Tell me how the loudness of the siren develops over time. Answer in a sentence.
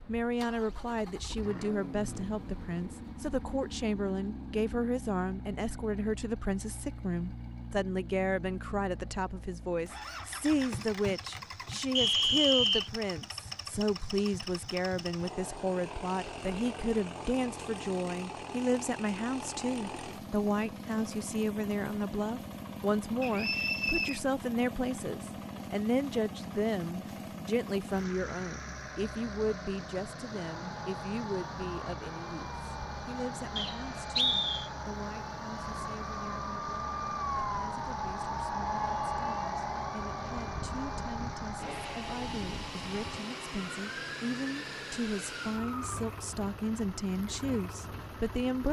The loudness of the siren goes up, then down.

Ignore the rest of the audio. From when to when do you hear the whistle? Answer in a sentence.
The whistle can be heard from 11.9 to 12.9 s, from 23.2 to 24.2 s and from 33.5 to 34.7 s.